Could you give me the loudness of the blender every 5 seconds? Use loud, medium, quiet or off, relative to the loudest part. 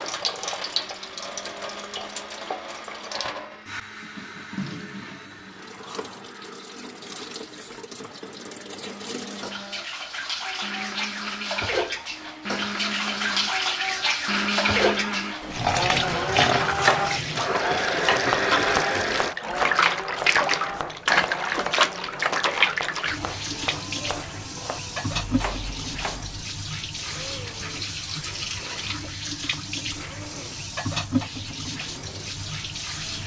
quiet, quiet, loud, loud, medium, quiet, quiet.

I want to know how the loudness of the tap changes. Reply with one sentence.
The volume of the tap goes up, then down.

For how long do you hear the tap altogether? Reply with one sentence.
You can hear the tap for 33 seconds altogether.